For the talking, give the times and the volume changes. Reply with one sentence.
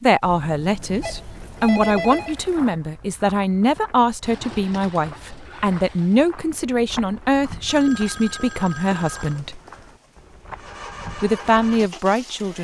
The talking can be heard from 0.0 to 9.6 s, at a steady volume; and briefly from 11.2 to 12.5 s.